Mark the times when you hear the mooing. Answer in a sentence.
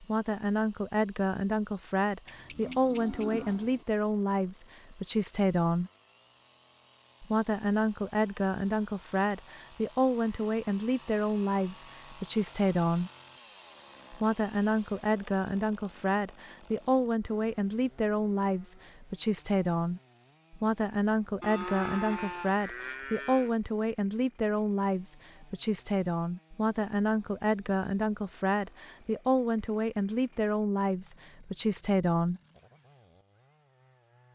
You can hear the mooing from 2.2 to 3.9 s and from 21.4 to 23.5 s.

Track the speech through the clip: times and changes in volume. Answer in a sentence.
The speech can be heard from 0.0 to 5.9 s, at a steady volume; from 7.2 to 13.1 s, at a steady volume; and from 14.1 to 32.4 s, at a steady volume.